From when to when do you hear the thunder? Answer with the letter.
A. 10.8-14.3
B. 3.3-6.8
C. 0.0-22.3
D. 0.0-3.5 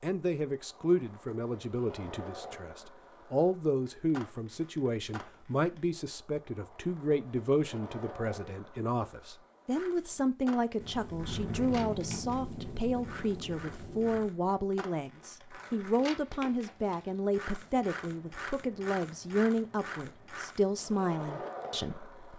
A.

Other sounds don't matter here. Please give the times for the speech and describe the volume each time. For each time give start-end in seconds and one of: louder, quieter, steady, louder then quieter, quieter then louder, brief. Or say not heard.
0.0-22.3 steady.